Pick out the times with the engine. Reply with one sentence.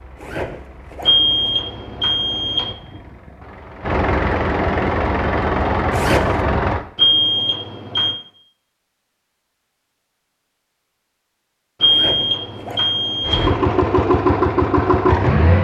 You can hear the engine from 0.0 to 6.8 s and from 13.2 to 15.6 s.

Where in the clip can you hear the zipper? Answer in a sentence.
You can hear the zipper from 0.1 to 1.3 s, from 5.9 to 6.3 s and from 11.8 to 12.9 s.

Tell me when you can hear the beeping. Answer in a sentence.
You can hear the beeping from 1.1 to 2.8 s, from 7.0 to 8.2 s and from 11.8 to 13.5 s.